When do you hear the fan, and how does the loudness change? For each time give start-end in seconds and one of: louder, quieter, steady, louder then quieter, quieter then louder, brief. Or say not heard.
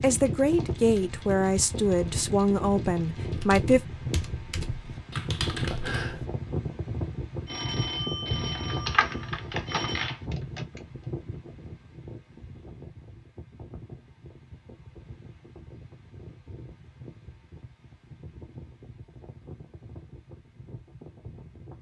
0.0-21.7 quieter.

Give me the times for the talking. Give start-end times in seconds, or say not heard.
0.0-3.8.